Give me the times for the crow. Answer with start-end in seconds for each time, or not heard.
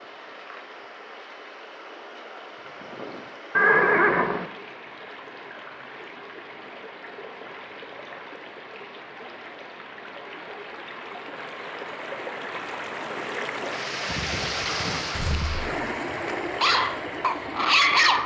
not heard.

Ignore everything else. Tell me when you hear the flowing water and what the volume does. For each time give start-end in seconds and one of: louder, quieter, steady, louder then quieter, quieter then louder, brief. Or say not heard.
0.0-18.2 louder.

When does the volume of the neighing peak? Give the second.
4 s.